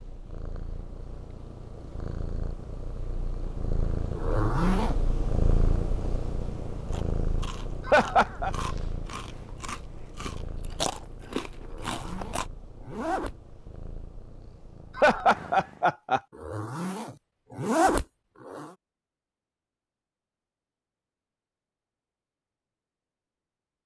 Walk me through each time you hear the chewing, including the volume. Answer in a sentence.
You can hear the chewing from 6.8 to 12.4 s, getting louder.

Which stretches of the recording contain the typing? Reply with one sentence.
The typing can't be heard in this clip.